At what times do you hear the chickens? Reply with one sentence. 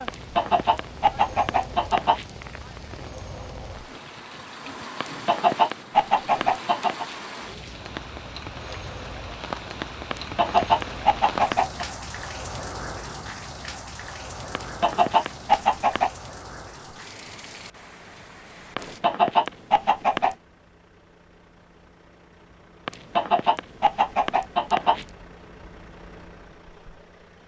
The chickens can be heard from 0.1 to 2.6 s, from 5.0 to 7.0 s, from 10.1 to 11.8 s, from 14.6 to 16.1 s, from 18.8 to 20.4 s and from 22.9 to 25.1 s.